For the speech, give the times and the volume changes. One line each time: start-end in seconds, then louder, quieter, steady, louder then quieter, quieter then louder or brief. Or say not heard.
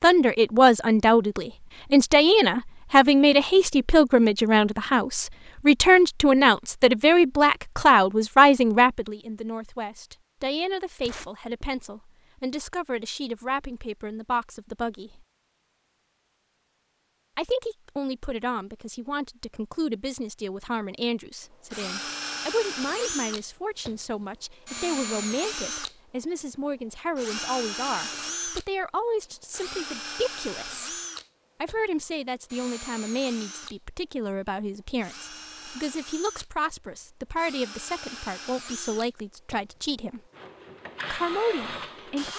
0.0-15.2 quieter
17.4-30.9 steady
31.6-40.2 steady
41.1-42.3 brief.